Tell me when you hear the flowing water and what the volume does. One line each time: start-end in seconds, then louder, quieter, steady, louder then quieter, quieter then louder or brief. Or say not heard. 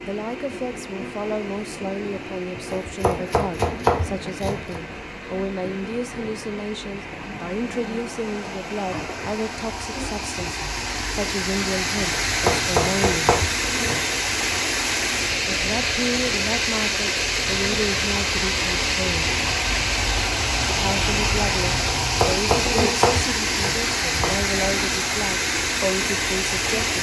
0.0-26.9 louder.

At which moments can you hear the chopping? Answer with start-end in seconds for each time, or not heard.
2.7-5.0, 12.2-14.2, 22.0-24.4.